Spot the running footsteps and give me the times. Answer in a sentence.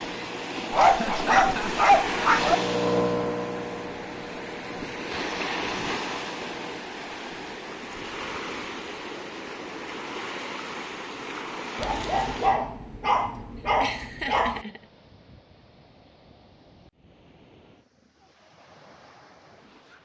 The running footsteps can't be heard in this clip.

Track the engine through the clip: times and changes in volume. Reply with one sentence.
You can hear the engine from 0.0 to 6.8 s, getting louder then quieter.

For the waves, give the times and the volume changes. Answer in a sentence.
You can hear the waves from 0.0 to 20.0 s, getting quieter.